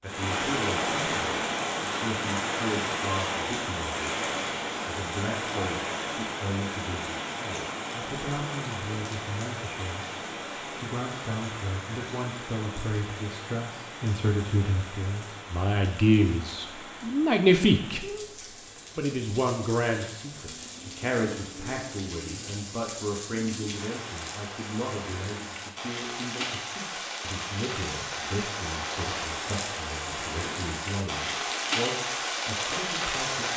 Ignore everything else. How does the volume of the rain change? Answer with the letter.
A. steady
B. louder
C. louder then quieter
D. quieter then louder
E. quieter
D.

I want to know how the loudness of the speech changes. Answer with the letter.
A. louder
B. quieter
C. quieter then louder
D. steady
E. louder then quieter
E.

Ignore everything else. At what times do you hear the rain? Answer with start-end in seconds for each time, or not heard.
0.0-33.5.